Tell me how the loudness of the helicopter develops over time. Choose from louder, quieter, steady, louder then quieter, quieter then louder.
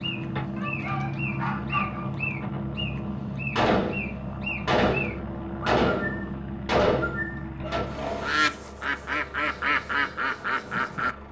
quieter.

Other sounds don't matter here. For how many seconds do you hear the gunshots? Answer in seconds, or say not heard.
4 s.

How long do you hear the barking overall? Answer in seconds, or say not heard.
2 s.